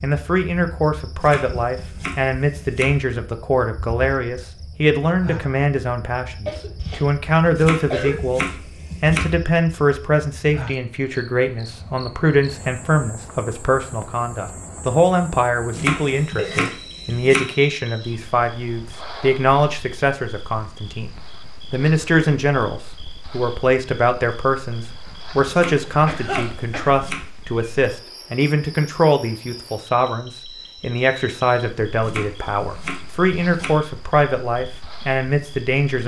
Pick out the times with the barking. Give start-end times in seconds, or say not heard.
not heard.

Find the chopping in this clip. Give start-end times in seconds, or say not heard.
1.2-3.0, 7.5-9.3, 15.7-17.5, 25.5-27.2, 32.0-33.8.